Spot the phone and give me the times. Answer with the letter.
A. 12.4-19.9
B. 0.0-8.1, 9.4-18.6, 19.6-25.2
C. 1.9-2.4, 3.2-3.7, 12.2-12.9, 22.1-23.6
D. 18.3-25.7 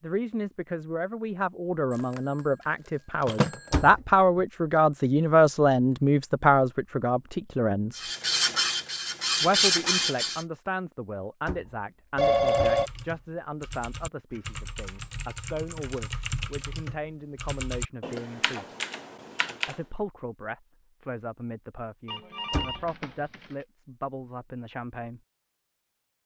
C.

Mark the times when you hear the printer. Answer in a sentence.
You can hear the printer from 8.0 to 10.4 s.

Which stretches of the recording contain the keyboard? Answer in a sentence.
The keyboard can be heard from 12.4 to 19.9 s.